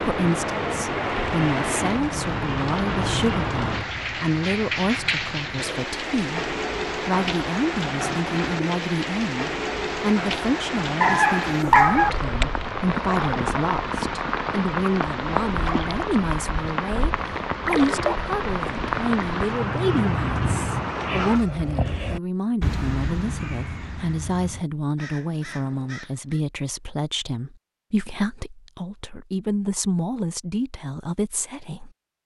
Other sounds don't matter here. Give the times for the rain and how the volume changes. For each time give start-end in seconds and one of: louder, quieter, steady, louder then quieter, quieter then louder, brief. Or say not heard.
0.0-21.4 steady.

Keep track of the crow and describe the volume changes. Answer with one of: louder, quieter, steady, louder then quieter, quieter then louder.
quieter.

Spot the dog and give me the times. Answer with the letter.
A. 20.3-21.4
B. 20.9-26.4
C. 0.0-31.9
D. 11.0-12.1
D.